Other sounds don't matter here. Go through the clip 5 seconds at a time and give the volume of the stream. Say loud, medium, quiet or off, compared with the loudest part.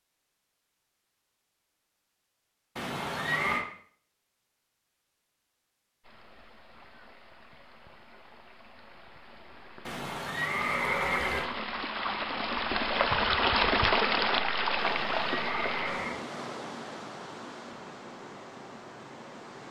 off, quiet, loud, medium.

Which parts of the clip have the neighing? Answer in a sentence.
You can hear the neighing from 2.8 to 3.6 s, from 9.8 to 11.5 s and from 14.8 to 16.2 s.